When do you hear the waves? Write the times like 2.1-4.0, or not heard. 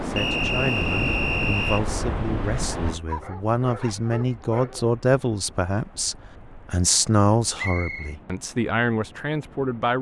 0.0-9.9.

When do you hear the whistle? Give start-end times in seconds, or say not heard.
0.1-1.8, 7.5-8.2.